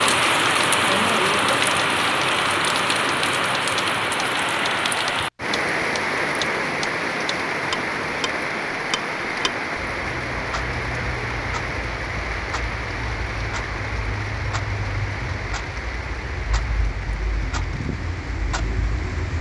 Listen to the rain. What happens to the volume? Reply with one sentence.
The volume of the rain goes down.